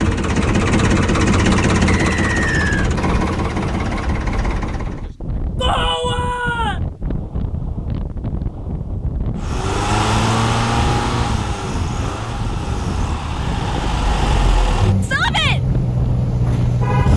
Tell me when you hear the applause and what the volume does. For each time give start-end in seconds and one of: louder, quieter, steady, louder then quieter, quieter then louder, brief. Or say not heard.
not heard.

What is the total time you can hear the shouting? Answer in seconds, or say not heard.
2 s.